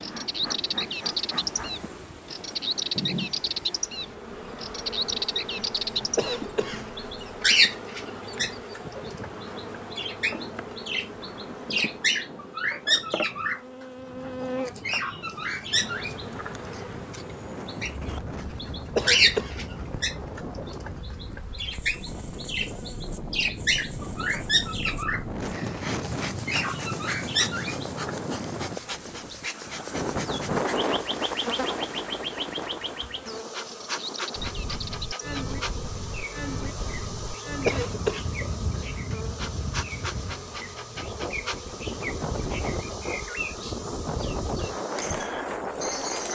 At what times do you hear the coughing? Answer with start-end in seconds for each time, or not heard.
6.2-6.8, 18.9-19.6, 37.6-38.2.